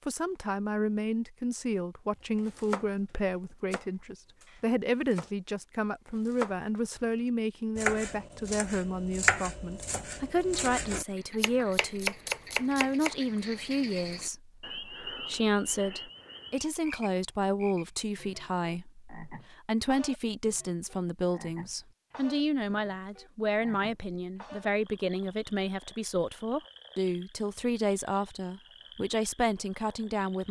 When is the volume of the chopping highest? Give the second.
9 s.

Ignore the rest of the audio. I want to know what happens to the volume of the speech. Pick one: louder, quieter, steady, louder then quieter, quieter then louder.
steady.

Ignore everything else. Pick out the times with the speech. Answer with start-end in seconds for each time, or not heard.
0.1-30.4.